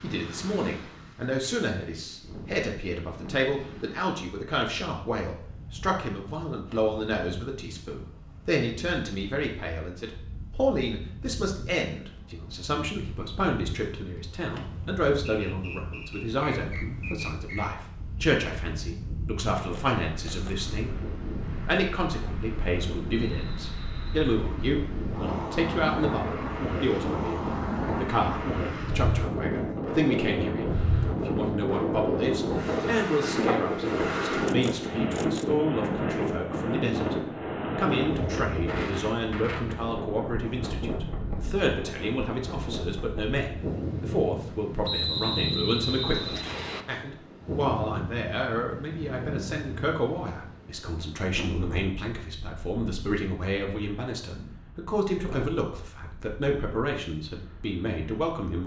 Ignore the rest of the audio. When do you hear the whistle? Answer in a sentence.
You can hear the whistle from 15.2 to 17.7 s, from 23.1 to 24.1 s and from 44.8 to 46.9 s.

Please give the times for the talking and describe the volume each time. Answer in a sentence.
The talking can be heard from 0.0 to 37.1 s, at a steady volume; and from 37.8 to 58.6 s, at a steady volume.